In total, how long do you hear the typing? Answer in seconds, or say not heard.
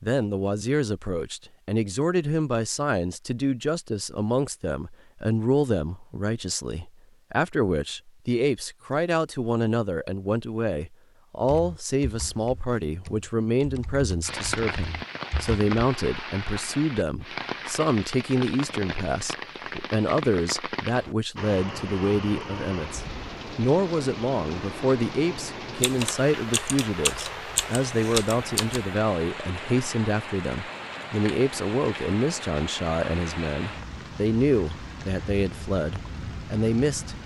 7 s.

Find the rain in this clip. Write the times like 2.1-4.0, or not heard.
14.2-37.2.